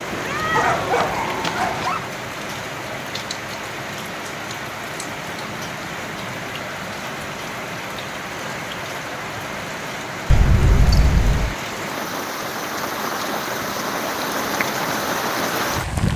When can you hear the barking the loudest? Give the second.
1 s.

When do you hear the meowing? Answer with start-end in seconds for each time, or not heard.
0.1-1.9, 10.3-11.6.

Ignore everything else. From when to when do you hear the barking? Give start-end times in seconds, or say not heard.
0.5-2.1.